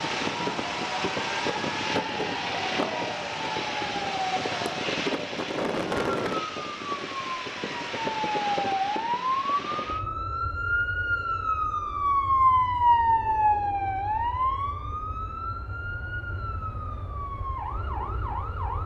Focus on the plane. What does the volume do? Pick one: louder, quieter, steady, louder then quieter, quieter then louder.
quieter.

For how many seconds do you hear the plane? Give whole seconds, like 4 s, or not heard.
19 s.